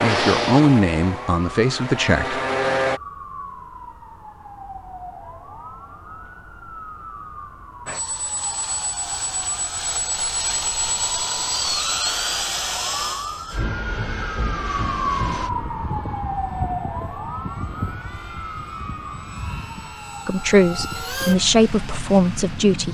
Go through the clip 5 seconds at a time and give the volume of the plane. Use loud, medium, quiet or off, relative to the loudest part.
loud, medium, loud, medium, medium.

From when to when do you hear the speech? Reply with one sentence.
The speech can be heard from 0.0 to 2.4 s and from 20.2 to 22.8 s.